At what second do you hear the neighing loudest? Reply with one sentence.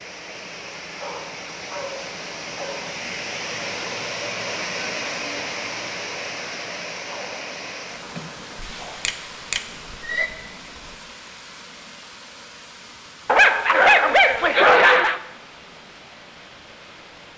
The loudest moment of the neighing is at 10 seconds.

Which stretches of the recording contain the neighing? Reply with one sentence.
The neighing can be heard from 8.6 to 10.3 s.